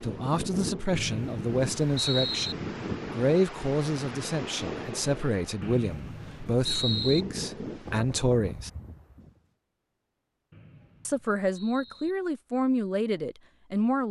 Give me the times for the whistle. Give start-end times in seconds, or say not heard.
0.9-2.5, 5.6-7.2, 10.5-12.2.